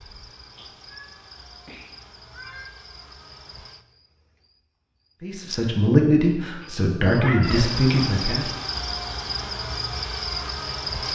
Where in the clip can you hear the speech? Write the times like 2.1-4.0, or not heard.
5.2-8.5.